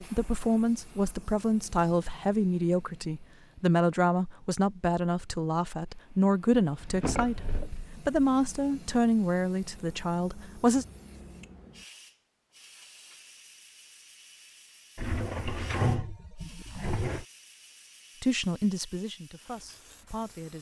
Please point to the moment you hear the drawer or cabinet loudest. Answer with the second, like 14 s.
16 s.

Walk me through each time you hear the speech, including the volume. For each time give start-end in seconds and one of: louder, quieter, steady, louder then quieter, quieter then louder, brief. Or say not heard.
0.0-10.8 steady
18.2-20.5 brief.